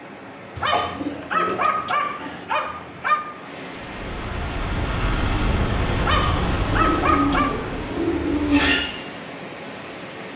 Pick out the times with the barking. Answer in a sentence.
You can hear the barking from 0.6 to 3.2 s and from 6.0 to 7.6 s.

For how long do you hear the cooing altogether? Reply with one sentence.
The cooing can be heard for 4 seconds in total.